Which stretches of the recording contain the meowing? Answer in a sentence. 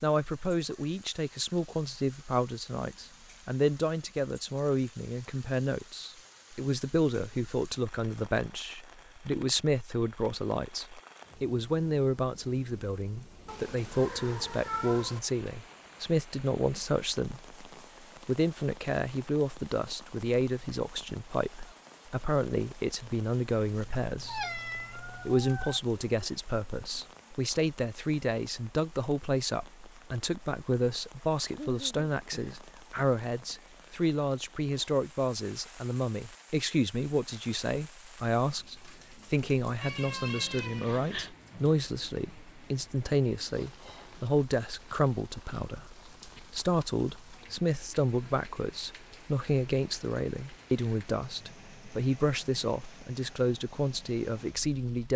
The meowing can be heard from 13.4 to 15.2 s, from 24.1 to 25.8 s and from 39.8 to 41.3 s.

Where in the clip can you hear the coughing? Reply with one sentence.
The coughing can't be heard in this clip.